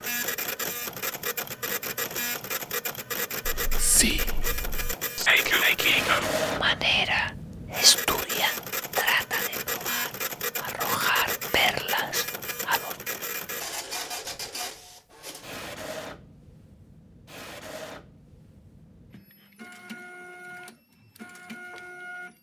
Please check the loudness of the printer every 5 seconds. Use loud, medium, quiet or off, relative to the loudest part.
loud, loud, loud, medium, medium.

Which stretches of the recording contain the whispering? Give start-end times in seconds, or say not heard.
3.5-12.9.